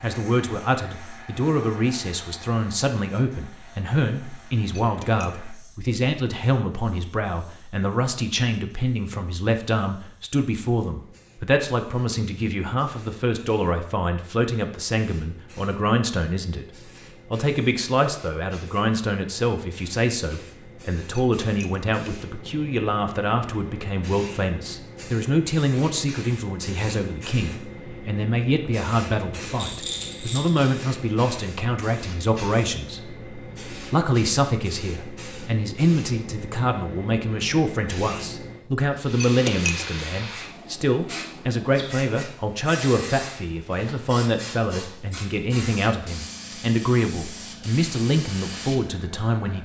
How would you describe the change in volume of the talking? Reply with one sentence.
The loudness of the talking stays about the same.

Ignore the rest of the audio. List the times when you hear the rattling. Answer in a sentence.
The rattling can be heard from 29.6 to 30.8 s.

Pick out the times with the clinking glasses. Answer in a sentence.
The clinking glasses can be heard from 4.7 to 5.5 s, from 21.1 to 21.9 s and from 39.2 to 40.0 s.